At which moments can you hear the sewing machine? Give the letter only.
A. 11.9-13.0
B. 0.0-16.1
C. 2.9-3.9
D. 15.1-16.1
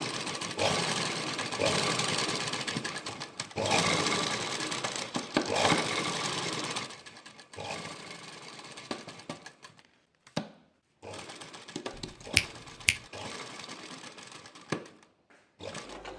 B.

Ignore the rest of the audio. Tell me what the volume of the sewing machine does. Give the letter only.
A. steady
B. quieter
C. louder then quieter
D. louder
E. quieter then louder
B.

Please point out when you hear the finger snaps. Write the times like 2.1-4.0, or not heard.
11.9-13.0.